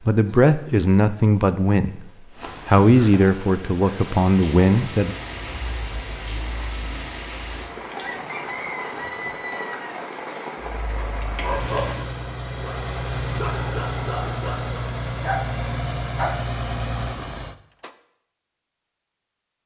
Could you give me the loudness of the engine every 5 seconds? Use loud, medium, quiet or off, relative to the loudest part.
off, quiet, loud, loud.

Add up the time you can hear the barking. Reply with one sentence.
You can hear the barking for 5 seconds altogether.